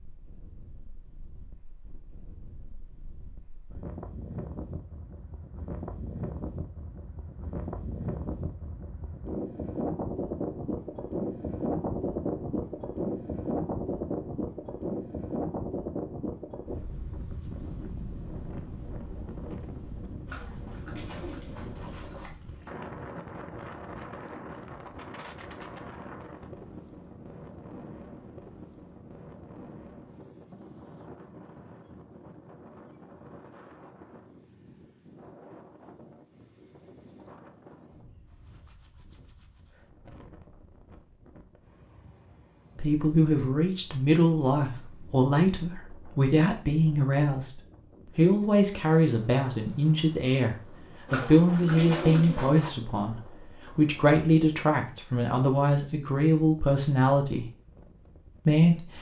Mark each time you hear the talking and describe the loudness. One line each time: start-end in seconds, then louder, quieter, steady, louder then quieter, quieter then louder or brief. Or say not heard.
42.8-57.5 steady
58.5-58.9 brief.